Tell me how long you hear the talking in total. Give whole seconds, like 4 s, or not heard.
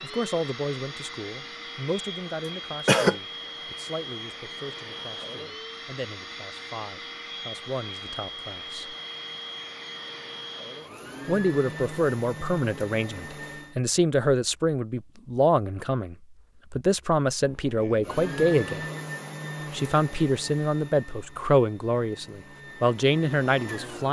21 s.